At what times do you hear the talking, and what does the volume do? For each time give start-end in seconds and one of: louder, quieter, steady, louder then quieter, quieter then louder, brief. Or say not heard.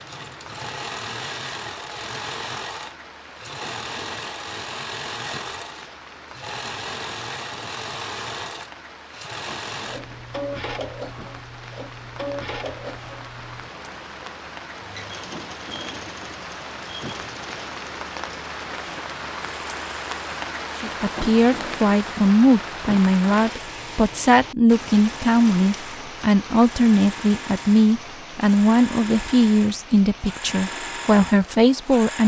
20.8-32.2 steady.